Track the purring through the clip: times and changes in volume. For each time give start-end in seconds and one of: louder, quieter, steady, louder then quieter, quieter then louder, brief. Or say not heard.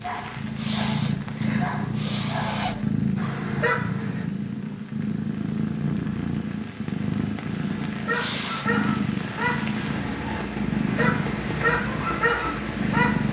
0.0-13.2 steady.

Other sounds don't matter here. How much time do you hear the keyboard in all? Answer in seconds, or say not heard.
not heard.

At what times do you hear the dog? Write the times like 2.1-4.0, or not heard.
0.0-4.2, 7.8-13.2.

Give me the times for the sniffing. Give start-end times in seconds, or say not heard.
0.6-2.8, 8.1-8.7.